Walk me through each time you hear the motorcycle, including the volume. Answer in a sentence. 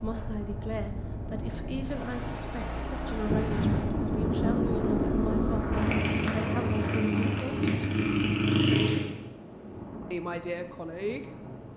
The motorcycle can be heard from 0.0 to 9.1 s, getting louder.